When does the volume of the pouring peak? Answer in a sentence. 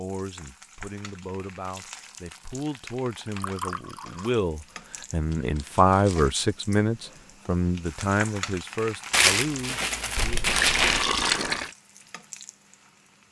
The volume of the pouring peaks at 11 seconds.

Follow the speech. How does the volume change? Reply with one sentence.
The volume of the speech goes up, then down.